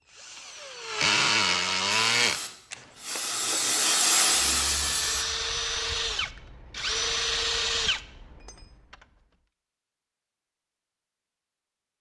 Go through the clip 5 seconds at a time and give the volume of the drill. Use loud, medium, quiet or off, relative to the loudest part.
loud, loud, off.